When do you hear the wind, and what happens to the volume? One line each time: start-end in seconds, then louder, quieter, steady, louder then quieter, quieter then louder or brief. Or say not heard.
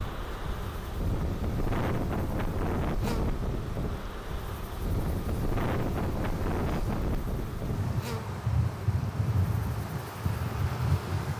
0.0-11.3 steady.